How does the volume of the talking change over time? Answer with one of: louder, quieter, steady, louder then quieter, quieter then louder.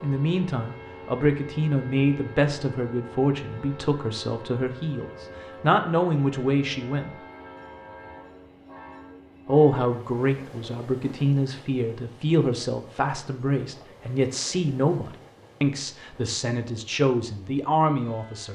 steady.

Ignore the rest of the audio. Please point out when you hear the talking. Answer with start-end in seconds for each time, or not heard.
0.0-7.2, 9.4-18.4.